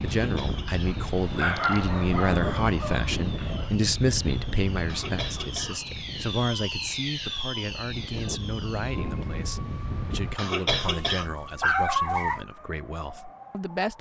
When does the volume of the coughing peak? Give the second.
11 s.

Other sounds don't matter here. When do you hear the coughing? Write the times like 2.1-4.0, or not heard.
0.1-1.9, 4.8-6.0, 10.3-11.3.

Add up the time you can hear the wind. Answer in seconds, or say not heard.
10 s.